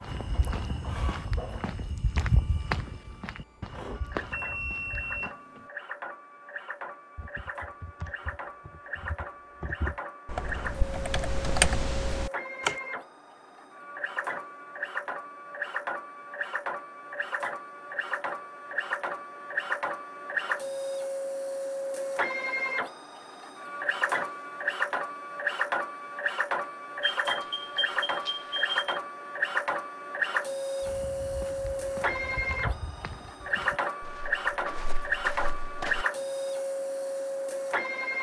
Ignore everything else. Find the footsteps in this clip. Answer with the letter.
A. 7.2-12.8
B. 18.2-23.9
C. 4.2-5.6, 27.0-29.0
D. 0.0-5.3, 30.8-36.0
D.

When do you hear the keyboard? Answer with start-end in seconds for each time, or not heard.
7.2-12.8.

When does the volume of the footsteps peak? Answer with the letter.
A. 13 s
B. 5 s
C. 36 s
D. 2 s
D.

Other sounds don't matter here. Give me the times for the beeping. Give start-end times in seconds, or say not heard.
4.2-5.6, 27.0-29.0.